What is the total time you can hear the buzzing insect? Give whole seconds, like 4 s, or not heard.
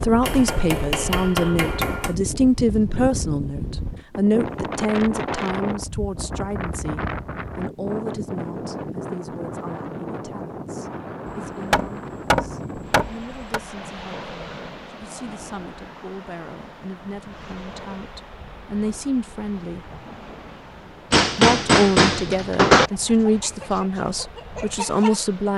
not heard.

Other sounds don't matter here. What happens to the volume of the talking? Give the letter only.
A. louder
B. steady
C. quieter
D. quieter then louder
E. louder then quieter
D.